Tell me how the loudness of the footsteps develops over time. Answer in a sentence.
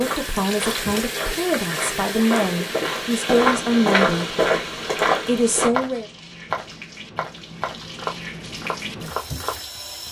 The loudness of the footsteps goes up, then down.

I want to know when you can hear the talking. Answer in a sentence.
The talking can be heard from 0.0 to 4.3 s and from 5.2 to 6.0 s.